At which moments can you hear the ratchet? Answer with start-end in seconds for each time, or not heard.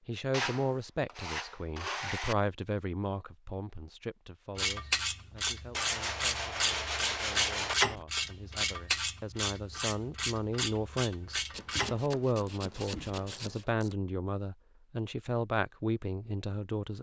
4.5-13.9.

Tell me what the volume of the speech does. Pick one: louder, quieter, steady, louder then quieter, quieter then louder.
quieter then louder.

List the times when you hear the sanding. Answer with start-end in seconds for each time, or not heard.
0.3-2.4, 5.7-7.8, 11.5-13.7.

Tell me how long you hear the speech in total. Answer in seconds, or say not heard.
17 s.